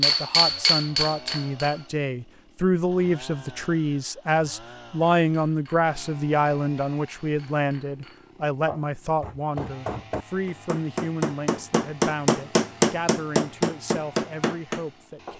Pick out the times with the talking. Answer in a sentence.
The talking can be heard from 0.0 to 15.3 s.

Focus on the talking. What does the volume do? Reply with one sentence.
The volume of the talking goes down.